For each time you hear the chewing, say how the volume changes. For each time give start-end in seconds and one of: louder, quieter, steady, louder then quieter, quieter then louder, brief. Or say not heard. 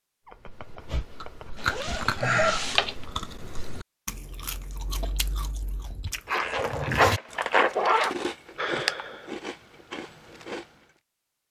0.2-10.8 quieter then louder.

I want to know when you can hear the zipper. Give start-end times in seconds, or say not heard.
1.6-3.0, 6.2-8.2.